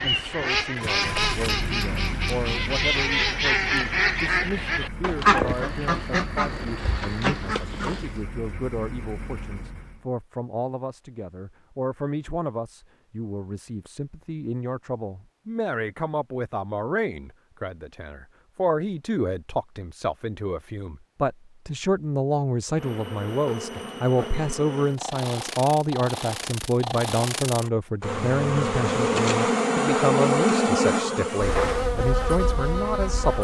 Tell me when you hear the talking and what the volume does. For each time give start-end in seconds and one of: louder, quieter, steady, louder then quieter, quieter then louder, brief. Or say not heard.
0.0-33.3 louder.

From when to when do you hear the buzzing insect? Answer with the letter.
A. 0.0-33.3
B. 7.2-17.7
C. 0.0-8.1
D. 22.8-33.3
D.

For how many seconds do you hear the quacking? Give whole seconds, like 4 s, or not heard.
8 s.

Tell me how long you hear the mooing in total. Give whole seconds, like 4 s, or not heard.
not heard.